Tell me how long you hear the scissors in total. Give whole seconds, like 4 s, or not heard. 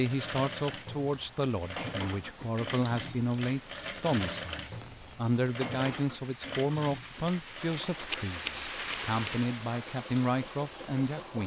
2 s.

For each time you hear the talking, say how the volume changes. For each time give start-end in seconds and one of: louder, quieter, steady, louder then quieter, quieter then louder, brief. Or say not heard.
0.0-11.4 steady.